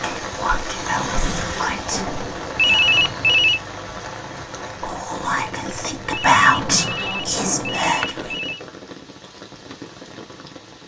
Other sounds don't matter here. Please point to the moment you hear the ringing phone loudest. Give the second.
3 s.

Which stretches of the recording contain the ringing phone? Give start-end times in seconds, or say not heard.
2.5-3.6, 6.1-8.6.